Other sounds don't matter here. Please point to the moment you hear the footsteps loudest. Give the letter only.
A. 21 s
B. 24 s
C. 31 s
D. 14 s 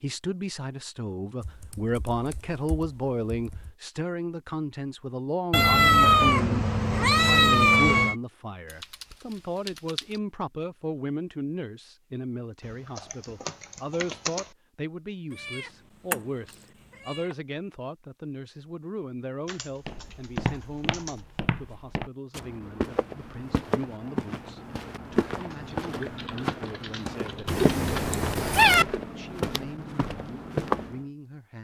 C.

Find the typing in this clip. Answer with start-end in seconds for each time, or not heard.
1.4-3.8, 8.7-10.2, 12.6-14.5, 19.4-21.2, 25.5-28.1.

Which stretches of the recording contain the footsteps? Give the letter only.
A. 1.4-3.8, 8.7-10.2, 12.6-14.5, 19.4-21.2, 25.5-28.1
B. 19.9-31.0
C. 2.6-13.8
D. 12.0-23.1
B.